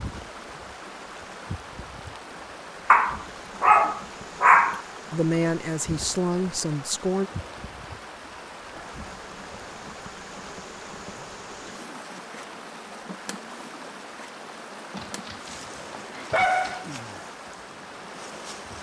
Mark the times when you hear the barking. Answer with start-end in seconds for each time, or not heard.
2.9-4.8, 14.9-17.0.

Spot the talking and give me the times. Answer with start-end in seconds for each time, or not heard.
5.1-7.3.